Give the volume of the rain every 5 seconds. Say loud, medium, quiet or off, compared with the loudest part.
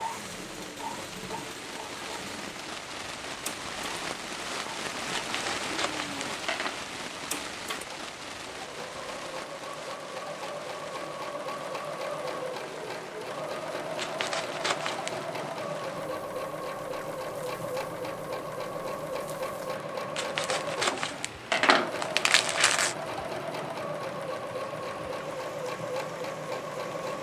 loud, loud, medium, medium, medium, medium.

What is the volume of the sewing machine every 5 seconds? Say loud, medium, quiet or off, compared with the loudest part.
medium, medium, loud, loud, loud, loud.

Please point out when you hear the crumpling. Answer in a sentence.
The crumpling can be heard from 5.2 to 6.8 s, from 13.9 to 15.2 s and from 20.1 to 22.9 s.